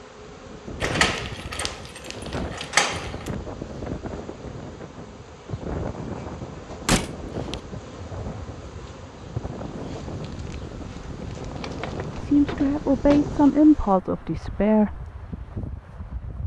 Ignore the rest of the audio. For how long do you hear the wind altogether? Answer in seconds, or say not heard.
16 s.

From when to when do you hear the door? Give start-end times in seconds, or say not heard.
0.8-3.3, 6.8-7.5, 11.2-13.4.